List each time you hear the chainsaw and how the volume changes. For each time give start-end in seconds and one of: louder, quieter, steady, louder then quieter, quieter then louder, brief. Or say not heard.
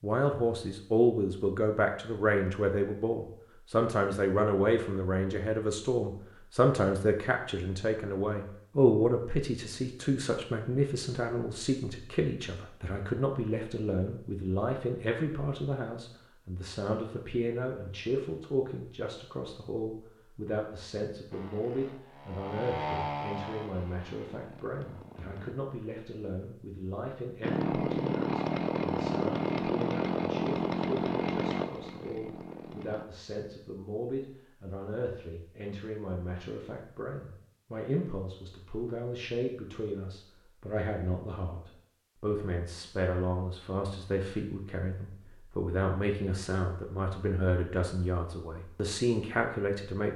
21.3-25.6 louder then quieter
27.4-33.0 quieter.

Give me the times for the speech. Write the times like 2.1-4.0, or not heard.
0.0-50.1.